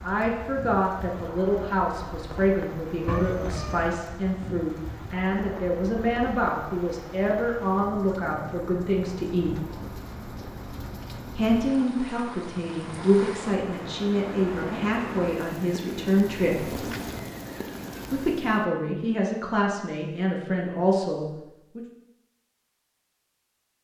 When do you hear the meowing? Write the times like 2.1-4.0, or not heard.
3.0-4.0.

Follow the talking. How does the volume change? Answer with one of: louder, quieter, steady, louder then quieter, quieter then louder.
steady.